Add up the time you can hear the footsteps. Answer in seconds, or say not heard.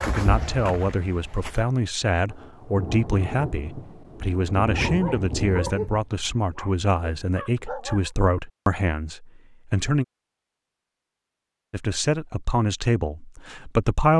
2 s.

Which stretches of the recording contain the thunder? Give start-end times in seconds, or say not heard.
2.3-5.8.